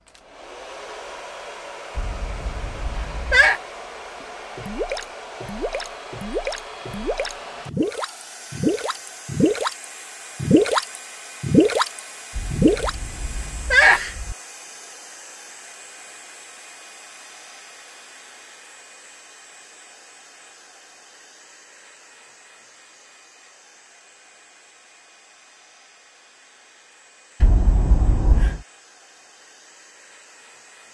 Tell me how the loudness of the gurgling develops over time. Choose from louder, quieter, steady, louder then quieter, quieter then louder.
louder.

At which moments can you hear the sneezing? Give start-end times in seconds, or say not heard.
1.9-3.6, 12.3-14.3, 27.4-28.6.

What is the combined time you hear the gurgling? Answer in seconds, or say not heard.
9 s.